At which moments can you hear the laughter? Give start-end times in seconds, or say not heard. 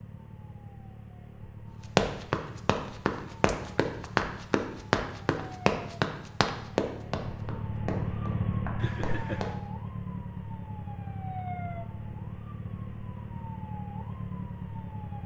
8.8-9.6.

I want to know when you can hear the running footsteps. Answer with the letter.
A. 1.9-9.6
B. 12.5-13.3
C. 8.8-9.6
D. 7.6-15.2
A.